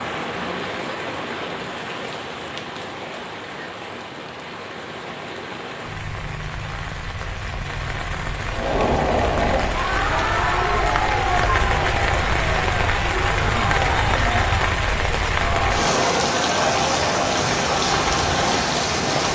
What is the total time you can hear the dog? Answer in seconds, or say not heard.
not heard.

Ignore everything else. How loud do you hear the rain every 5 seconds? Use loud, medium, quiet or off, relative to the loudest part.
medium, medium, loud, loud.